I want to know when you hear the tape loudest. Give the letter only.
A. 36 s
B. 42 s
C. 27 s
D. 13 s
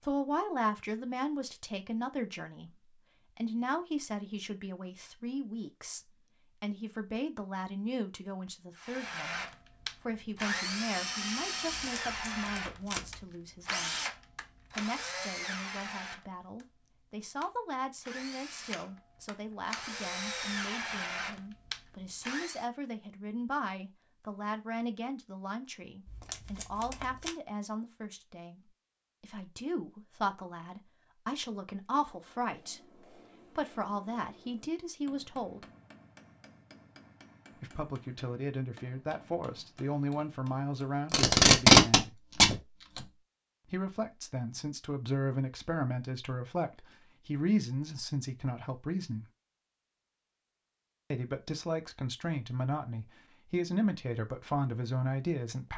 B.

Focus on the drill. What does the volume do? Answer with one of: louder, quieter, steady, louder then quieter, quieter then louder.
quieter then louder.